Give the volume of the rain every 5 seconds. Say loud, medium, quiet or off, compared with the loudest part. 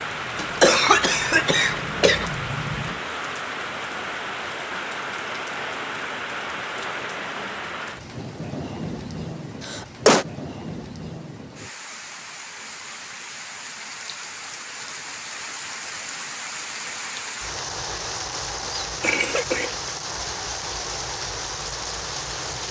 loud, loud, medium, loud, loud.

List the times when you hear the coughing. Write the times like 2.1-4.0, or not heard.
0.3-2.4, 9.6-10.2, 18.6-19.7.